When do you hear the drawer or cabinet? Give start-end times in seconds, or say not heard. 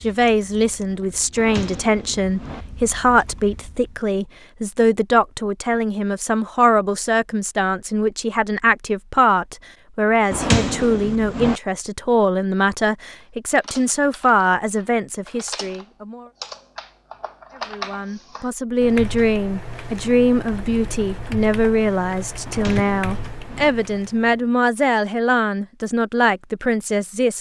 1.4-2.6, 10.3-11.6, 22.4-23.7.